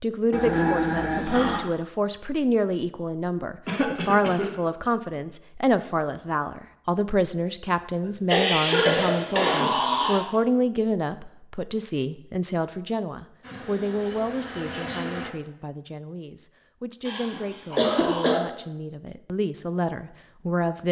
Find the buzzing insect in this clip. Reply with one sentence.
The buzzing insect can be heard from 13.4 to 15.3 s.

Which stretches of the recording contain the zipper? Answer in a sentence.
You can't hear the zipper here.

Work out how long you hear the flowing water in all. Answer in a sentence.
You can't hear the flowing water here.